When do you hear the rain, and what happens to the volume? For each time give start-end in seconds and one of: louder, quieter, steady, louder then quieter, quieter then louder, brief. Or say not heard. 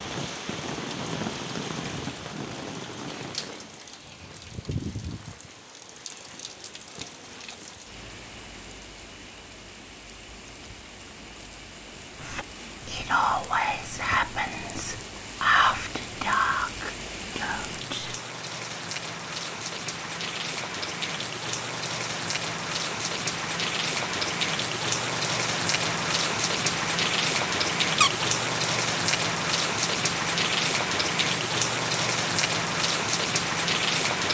0.0-34.2 quieter then louder.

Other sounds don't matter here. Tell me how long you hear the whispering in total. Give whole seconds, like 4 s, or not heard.
6 s.